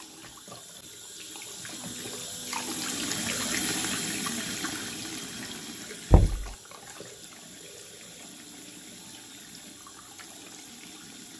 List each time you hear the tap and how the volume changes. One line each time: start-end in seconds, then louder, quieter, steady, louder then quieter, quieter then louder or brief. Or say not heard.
0.0-11.3 louder then quieter.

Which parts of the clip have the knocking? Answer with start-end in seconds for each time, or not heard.
6.1-6.5.